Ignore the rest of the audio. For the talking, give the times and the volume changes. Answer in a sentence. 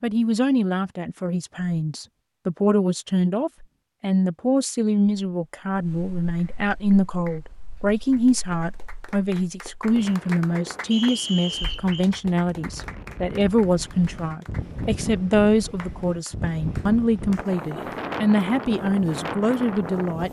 You can hear the talking from 0.0 to 20.2 s, at a steady volume.